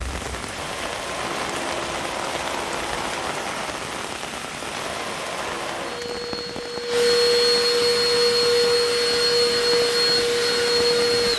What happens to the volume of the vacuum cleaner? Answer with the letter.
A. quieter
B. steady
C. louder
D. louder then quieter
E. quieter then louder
C.